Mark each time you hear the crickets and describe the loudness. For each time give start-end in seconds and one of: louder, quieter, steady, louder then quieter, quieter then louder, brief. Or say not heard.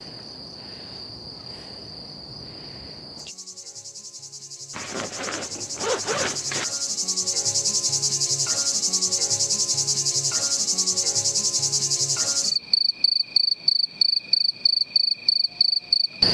0.0-16.2 louder.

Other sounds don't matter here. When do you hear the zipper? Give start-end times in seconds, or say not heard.
4.7-6.7.